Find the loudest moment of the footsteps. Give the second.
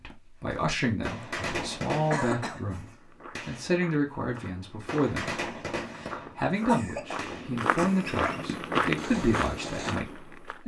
9 s.